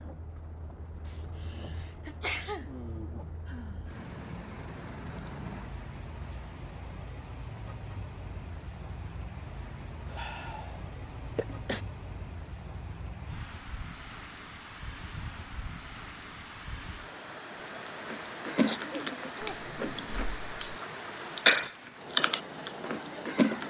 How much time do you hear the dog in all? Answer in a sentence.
The dog can't be heard in this clip.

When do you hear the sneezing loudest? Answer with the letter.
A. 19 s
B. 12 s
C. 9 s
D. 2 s
D.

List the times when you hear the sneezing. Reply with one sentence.
You can hear the sneezing from 1.1 to 2.7 s, from 10.8 to 11.8 s and from 18.4 to 19.6 s.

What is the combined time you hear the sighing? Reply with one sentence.
You can hear the sighing for 3 seconds altogether.